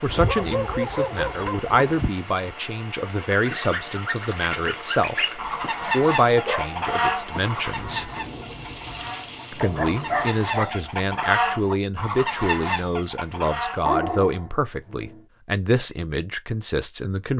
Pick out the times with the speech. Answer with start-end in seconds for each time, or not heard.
0.0-8.1, 9.5-17.3.